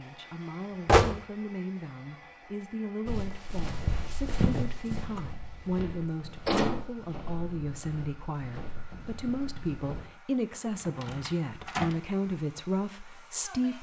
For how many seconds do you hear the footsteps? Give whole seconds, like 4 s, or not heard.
7 s.